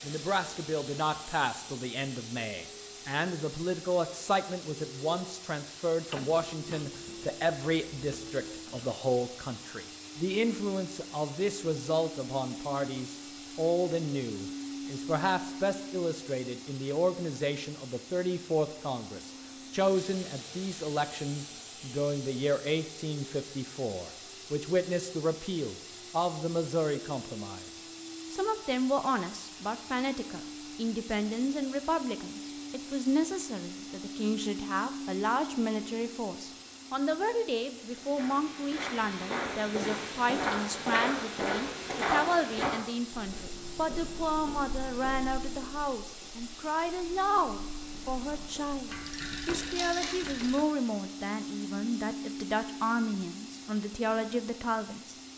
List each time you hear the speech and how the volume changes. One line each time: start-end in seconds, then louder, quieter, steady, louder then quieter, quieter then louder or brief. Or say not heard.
0.0-27.6 steady
28.3-55.1 steady.